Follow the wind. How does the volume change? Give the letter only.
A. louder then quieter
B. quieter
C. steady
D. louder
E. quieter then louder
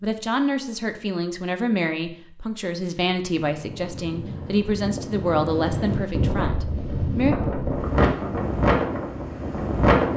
D.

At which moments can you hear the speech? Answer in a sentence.
You can hear the speech from 0.0 to 7.3 s.